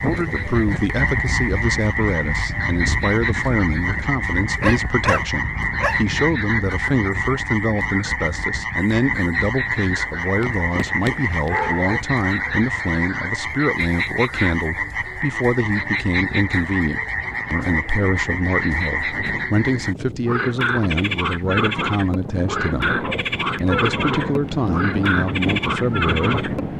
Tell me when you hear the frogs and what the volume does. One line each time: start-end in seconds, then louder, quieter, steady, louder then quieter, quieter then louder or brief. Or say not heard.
0.0-26.6 steady.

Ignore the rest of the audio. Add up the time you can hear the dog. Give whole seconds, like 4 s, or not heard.
5 s.